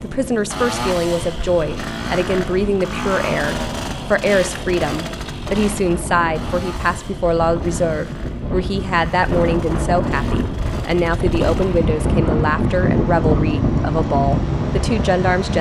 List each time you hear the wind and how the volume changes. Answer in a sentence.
You can hear the wind from 0.0 to 15.5 s, getting louder.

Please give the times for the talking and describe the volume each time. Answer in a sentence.
The talking can be heard from 0.0 to 15.5 s, at a steady volume.